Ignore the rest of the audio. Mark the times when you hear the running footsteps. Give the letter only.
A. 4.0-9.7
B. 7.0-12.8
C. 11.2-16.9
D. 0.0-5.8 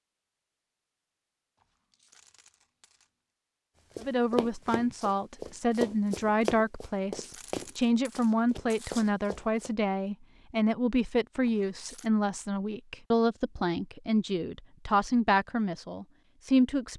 A.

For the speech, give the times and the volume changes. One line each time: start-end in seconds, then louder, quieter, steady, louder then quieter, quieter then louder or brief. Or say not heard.
4.0-16.9 steady.